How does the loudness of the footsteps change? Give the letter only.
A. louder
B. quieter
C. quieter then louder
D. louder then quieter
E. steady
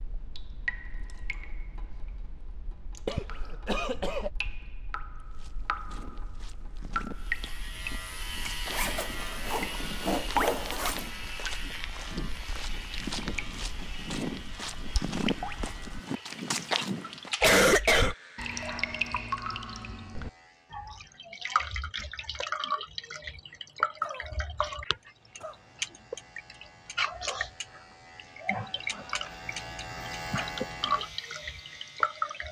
A.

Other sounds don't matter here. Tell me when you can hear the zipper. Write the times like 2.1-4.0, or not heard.
8.7-11.1.